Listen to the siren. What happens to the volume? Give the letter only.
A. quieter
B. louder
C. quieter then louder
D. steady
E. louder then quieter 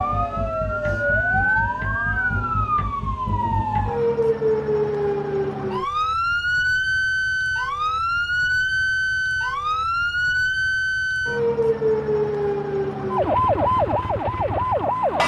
D.